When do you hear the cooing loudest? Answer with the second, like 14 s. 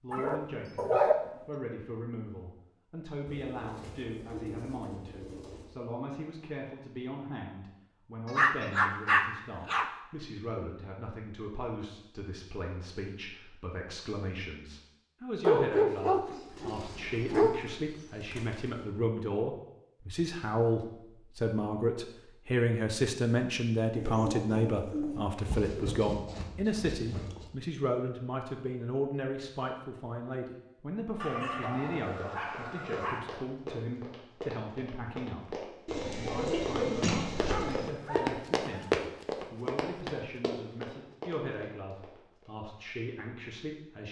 37 s.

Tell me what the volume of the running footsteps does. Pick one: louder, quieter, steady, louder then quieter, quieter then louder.
louder then quieter.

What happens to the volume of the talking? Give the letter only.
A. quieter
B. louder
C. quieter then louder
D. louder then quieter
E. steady
D.